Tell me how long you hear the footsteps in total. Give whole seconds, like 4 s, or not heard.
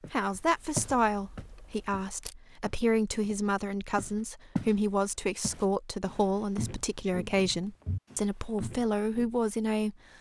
9 s.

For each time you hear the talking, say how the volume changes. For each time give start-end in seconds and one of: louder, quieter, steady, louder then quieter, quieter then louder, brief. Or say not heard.
0.1-9.9 steady.